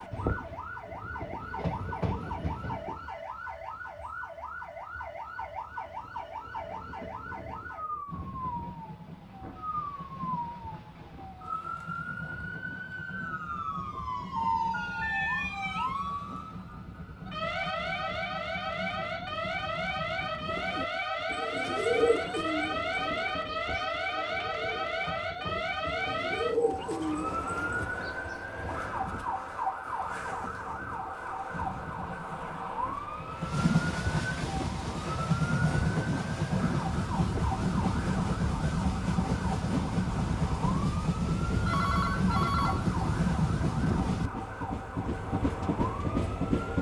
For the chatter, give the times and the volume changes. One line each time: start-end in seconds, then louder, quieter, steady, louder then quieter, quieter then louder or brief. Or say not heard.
not heard.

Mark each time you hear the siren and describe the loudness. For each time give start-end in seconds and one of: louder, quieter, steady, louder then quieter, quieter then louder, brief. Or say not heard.
0.0-46.7 louder then quieter.